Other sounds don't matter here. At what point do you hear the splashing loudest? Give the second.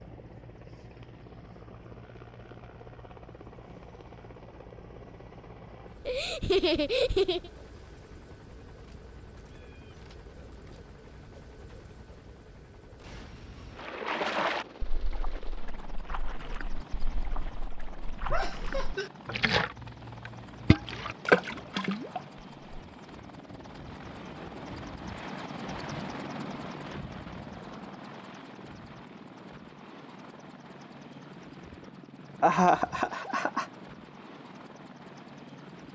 21 s.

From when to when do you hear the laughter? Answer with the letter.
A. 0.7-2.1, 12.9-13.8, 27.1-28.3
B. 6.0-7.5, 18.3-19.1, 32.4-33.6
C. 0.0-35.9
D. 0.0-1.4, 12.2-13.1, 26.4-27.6
B.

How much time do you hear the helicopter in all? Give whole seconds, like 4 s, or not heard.
36 s.